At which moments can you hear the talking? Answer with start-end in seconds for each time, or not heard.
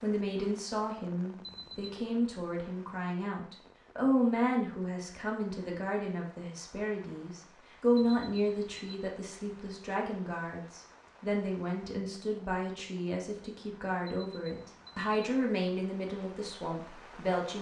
0.0-17.5.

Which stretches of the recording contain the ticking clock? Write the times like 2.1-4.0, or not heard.
not heard.